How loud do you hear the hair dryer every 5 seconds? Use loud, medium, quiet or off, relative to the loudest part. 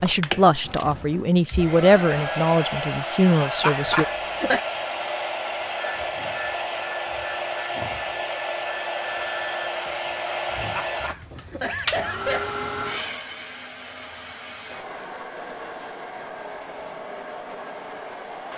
loud, loud, loud, medium.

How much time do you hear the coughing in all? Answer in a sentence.
You can hear the coughing for 3 seconds altogether.